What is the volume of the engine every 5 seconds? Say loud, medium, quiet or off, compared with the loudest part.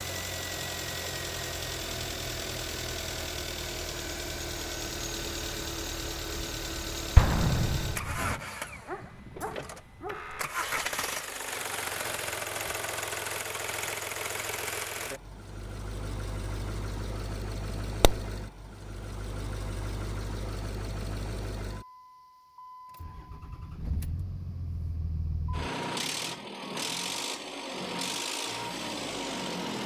loud, loud, loud, medium, medium, loud.